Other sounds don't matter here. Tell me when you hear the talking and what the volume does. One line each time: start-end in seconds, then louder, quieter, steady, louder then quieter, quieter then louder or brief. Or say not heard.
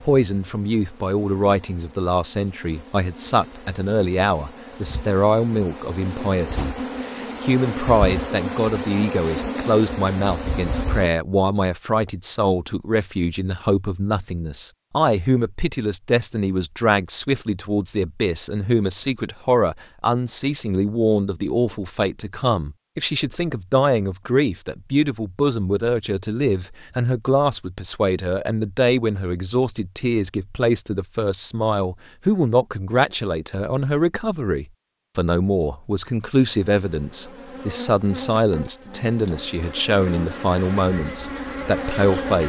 0.1-42.4 steady.